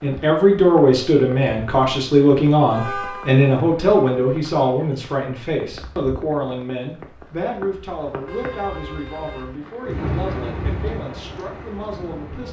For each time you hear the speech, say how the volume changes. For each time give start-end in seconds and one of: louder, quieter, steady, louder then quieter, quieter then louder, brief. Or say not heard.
0.0-12.4 quieter.